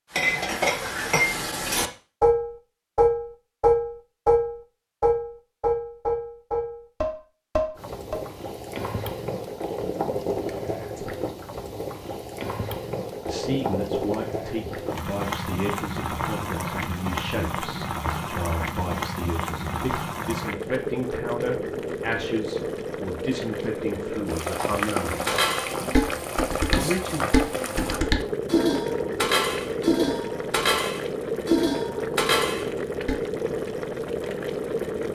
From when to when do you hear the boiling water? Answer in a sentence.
You can hear the boiling water from 7.8 to 35.0 s.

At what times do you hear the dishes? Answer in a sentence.
You can hear the dishes from 0.1 to 8.2 s and from 25.2 to 33.1 s.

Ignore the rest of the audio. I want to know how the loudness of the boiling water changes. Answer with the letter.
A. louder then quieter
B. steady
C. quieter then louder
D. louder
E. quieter
B.